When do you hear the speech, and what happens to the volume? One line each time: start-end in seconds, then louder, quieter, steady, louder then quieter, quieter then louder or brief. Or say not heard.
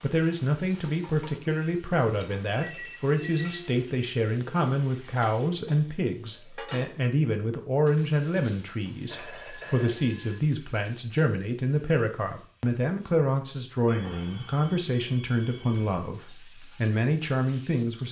0.0-18.0 steady.